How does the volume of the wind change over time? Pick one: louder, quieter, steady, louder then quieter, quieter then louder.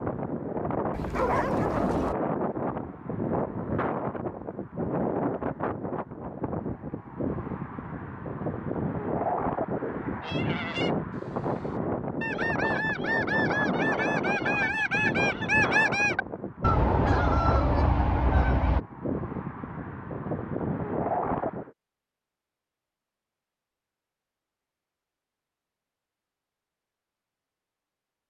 steady.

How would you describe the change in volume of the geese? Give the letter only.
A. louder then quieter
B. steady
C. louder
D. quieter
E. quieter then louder
C.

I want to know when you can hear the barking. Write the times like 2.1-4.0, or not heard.
0.9-2.1.